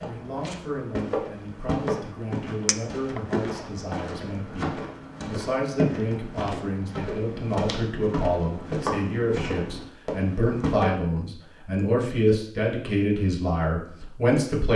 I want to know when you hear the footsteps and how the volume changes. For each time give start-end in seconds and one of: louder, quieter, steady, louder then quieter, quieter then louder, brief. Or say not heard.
0.0-10.8 steady.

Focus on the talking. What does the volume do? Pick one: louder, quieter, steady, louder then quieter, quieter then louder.
louder.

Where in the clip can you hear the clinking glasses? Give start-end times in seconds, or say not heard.
2.6-3.2.